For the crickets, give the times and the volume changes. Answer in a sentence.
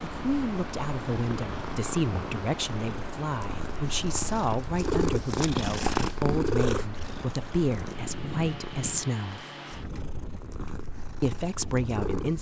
The crickets can't be heard in this clip.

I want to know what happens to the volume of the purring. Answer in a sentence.
The volume of the purring goes up, then down.